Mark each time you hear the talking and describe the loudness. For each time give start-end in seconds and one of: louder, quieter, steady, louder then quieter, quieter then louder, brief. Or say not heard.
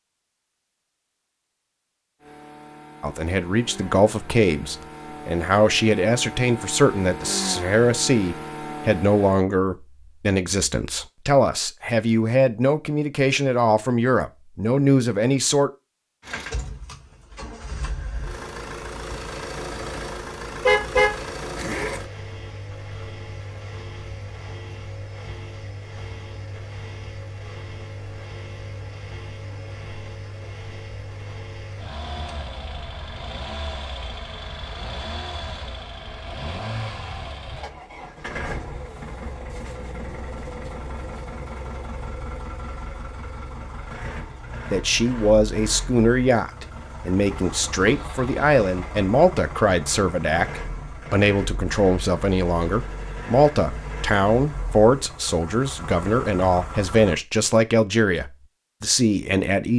3.0-15.7 steady
44.7-59.7 steady.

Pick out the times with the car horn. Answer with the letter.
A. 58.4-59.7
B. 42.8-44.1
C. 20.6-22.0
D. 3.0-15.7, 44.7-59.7
C.